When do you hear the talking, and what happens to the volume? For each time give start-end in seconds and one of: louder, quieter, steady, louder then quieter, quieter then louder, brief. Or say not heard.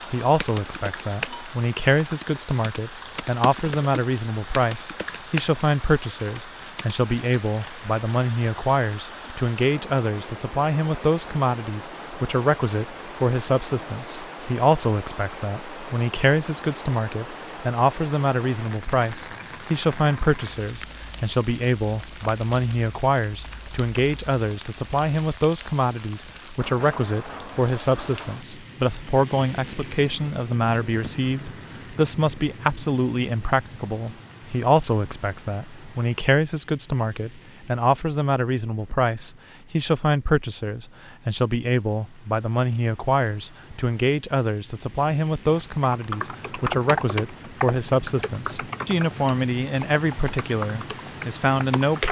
0.1-52.0 steady.